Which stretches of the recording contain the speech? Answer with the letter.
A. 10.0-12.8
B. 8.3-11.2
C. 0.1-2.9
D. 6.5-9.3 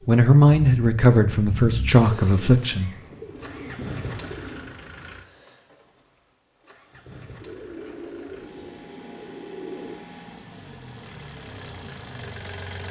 C.